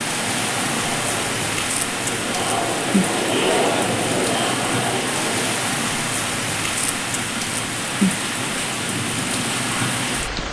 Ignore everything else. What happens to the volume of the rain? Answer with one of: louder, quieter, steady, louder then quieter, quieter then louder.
steady.